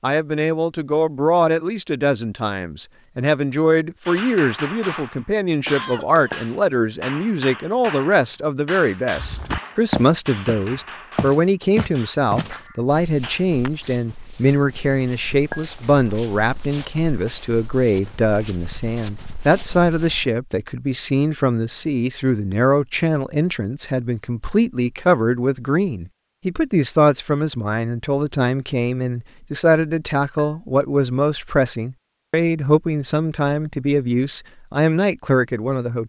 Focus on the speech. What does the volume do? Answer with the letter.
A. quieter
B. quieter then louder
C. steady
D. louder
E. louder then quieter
C.